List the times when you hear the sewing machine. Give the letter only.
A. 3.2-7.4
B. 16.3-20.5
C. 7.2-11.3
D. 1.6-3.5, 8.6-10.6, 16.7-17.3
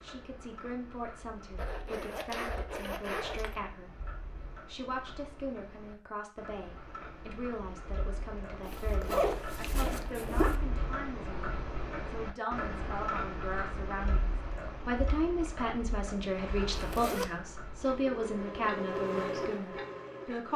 B.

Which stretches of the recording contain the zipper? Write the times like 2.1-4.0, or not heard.
1.6-3.5, 8.6-10.6, 16.7-17.3.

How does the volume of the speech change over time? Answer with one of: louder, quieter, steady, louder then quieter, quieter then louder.
louder.